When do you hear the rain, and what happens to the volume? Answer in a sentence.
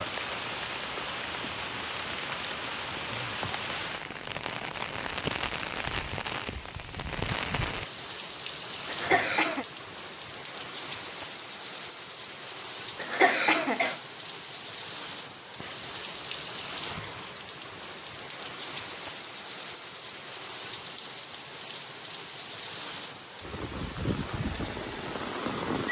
You can hear the rain from 0.0 to 25.8 s, at a steady volume.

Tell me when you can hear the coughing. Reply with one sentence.
You can hear the coughing from 8.8 to 9.7 s and from 12.9 to 14.0 s.